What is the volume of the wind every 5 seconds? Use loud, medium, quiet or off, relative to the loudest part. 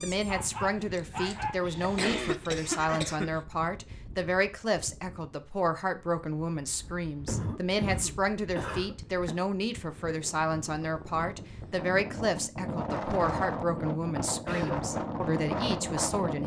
quiet, quiet, loud, loud.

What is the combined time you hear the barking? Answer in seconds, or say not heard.
3 s.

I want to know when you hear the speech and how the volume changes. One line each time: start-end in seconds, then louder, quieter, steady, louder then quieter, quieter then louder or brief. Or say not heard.
0.0-16.4 steady.